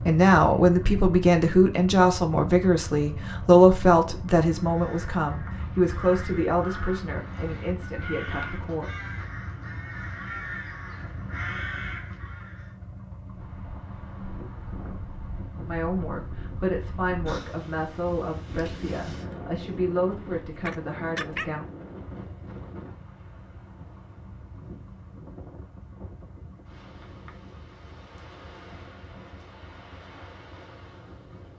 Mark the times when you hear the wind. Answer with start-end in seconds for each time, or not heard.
13.3-31.5.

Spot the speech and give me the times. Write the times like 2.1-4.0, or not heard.
0.1-8.9, 15.7-21.6.